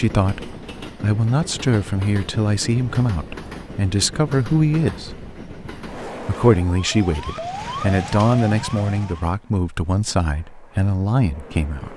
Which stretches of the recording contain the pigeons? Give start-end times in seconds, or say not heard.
not heard.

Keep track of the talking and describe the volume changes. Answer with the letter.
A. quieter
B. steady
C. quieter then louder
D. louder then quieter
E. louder
B.